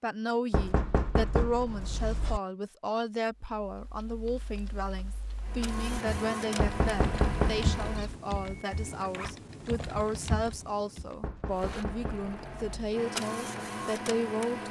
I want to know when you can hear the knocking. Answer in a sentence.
You can hear the knocking from 0.5 to 2.4 s, from 6.6 to 8.2 s and from 11.2 to 12.9 s.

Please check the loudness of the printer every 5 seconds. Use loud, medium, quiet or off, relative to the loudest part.
off, loud, loud.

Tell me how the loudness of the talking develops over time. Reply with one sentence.
The volume of the talking stays about the same.